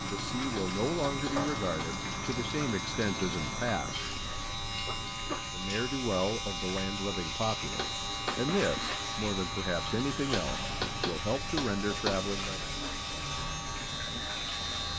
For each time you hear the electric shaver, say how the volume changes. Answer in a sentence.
The electric shaver can be heard from 0.0 to 14.9 s, at a steady volume.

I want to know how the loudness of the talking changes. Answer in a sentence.
The volume of the talking stays about the same.